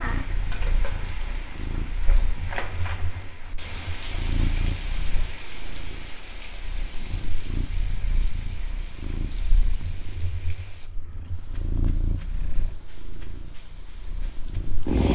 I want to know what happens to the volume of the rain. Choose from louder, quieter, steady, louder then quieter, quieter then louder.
quieter.